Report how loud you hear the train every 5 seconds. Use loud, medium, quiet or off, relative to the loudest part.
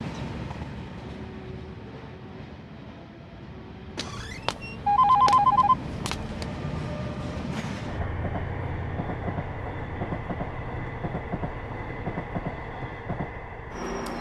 medium, loud, loud.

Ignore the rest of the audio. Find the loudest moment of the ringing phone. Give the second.
5 s.